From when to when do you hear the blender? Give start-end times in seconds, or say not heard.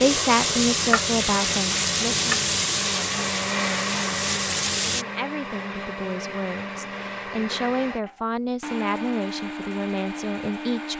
0.0-10.9.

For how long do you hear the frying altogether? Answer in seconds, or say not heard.
5 s.